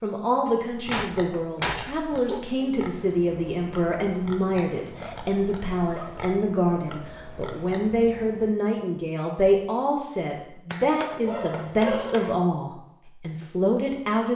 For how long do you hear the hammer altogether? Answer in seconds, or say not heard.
3 s.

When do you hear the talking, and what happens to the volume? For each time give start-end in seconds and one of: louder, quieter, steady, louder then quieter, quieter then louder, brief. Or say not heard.
0.0-14.3 steady.